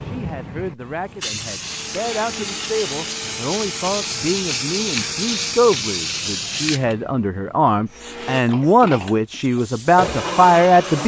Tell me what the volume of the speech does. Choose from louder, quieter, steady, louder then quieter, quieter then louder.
louder.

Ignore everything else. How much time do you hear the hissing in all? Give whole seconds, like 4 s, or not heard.
11 s.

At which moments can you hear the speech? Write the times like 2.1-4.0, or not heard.
0.0-11.0.